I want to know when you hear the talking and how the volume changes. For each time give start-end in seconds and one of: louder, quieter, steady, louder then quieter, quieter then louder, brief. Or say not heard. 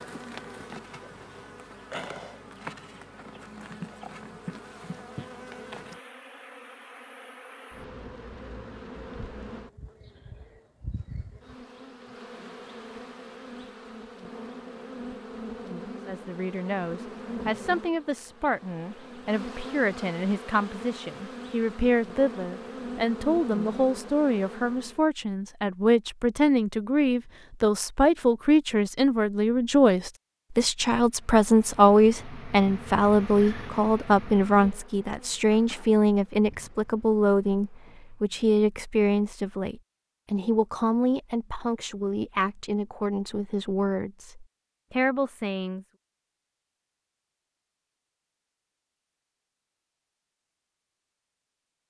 16.1-45.9 louder then quieter.